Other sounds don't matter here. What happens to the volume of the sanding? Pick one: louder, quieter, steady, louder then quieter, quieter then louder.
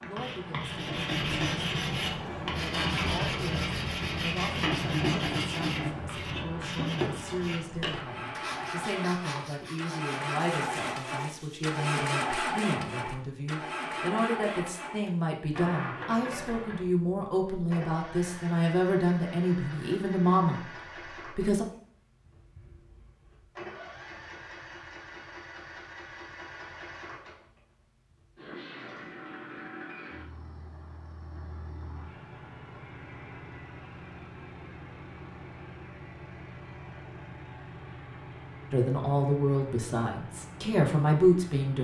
quieter.